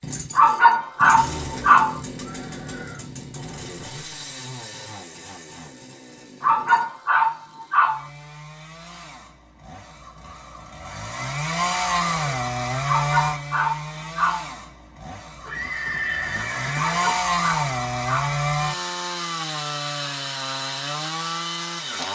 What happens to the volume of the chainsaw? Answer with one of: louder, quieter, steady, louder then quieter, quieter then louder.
quieter then louder.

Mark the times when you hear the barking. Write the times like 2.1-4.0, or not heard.
0.3-2.0, 6.4-8.1, 12.8-14.5, 16.9-18.4.